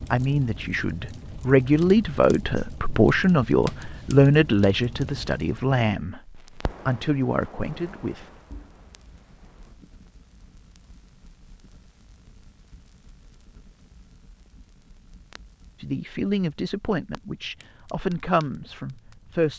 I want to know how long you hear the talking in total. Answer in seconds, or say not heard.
12 s.